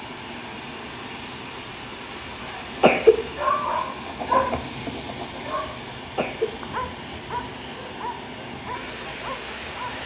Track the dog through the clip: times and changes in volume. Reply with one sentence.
The dog can be heard from 2.5 to 9.9 s, getting quieter.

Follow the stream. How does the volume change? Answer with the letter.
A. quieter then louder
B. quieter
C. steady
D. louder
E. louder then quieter
C.